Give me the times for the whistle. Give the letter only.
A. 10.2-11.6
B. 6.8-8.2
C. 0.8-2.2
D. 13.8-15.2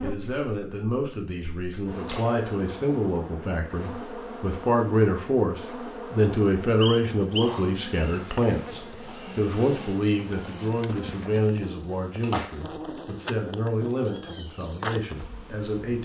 B.